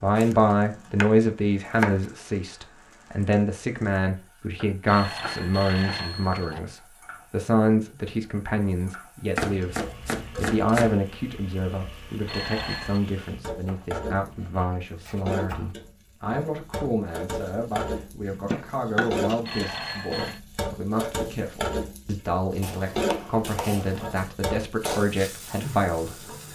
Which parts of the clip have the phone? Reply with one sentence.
The phone can be heard from 4.8 to 6.5 s, from 12.2 to 13.0 s and from 19.4 to 20.4 s.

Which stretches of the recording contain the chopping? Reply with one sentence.
The chopping can be heard from 0.1 to 2.0 s, from 4.5 to 6.6 s, from 9.3 to 10.9 s, from 13.7 to 15.8 s, from 18.3 to 19.8 s and from 22.6 to 24.3 s.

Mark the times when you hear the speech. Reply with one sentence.
You can hear the speech from 0.0 to 26.4 s.